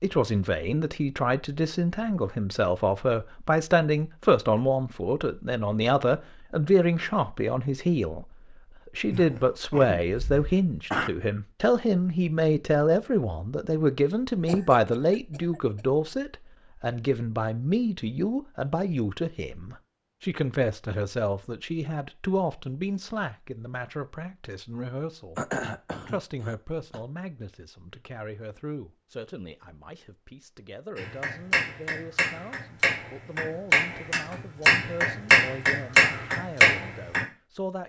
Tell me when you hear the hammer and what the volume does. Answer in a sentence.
You can hear the hammer from 30.9 to 37.2 s, getting louder.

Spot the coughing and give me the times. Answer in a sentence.
You can hear the coughing from 9.1 to 11.1 s, from 14.4 to 15.8 s and from 25.4 to 27.0 s.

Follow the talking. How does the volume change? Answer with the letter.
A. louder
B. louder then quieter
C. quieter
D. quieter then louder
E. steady
C.